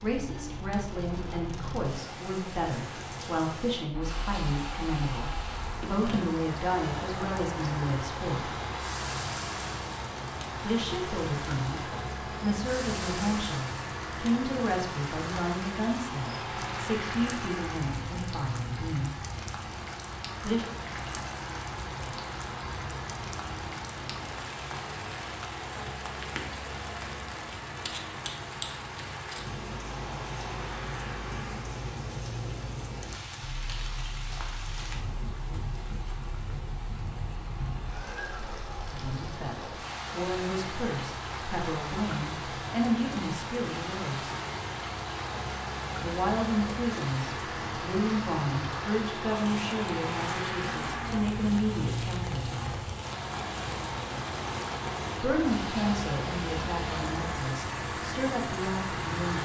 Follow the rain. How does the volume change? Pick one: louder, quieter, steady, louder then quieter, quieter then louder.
steady.